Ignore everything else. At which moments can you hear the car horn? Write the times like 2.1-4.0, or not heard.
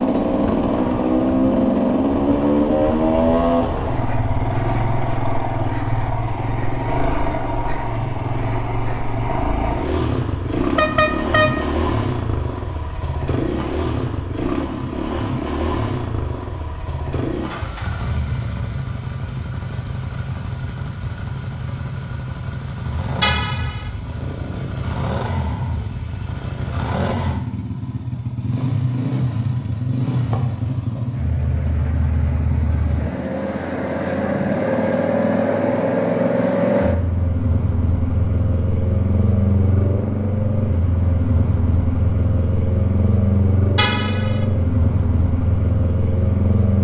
10.6-11.6, 23.2-23.9, 43.8-44.5.